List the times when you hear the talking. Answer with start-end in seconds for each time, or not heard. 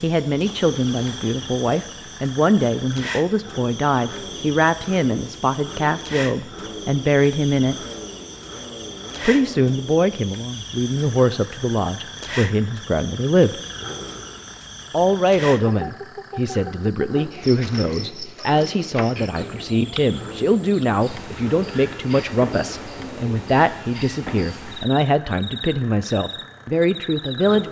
0.0-7.8, 9.2-13.6, 14.9-27.6.